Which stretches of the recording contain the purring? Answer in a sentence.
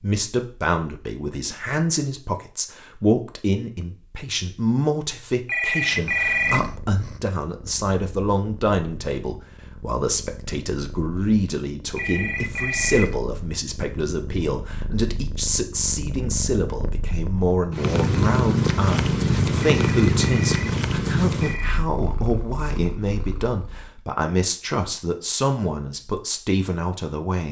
The purring can be heard from 6.2 to 23.9 s.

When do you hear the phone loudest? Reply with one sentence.
The volume of the phone peaks at 6 seconds.